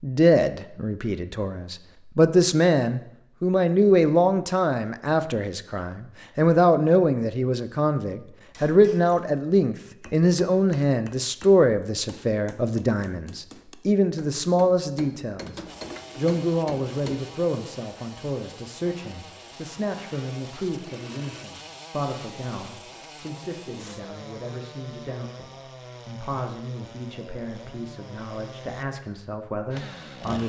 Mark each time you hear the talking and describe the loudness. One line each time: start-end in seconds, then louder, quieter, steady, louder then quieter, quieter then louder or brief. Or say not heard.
0.0-30.4 quieter.